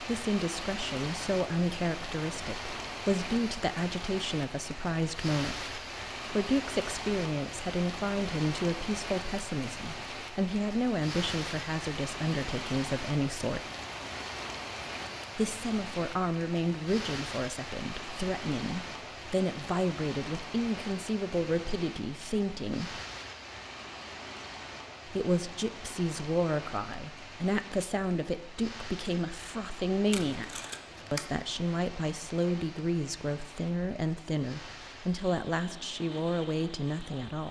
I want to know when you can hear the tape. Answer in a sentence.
The tape can be heard from 30.1 to 31.3 s.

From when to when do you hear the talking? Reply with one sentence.
You can hear the talking from 0.0 to 13.6 s, from 15.3 to 23.0 s and from 25.1 to 37.4 s.